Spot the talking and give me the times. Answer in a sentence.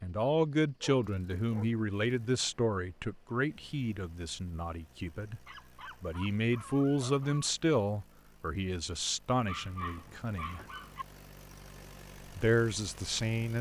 The talking can be heard from 0.0 to 5.4 s, from 6.0 to 10.6 s and from 12.3 to 13.5 s.